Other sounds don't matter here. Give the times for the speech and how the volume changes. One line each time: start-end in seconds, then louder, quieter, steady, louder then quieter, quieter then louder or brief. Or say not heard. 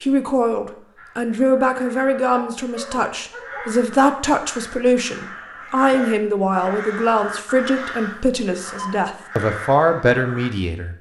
0.0-10.9 steady.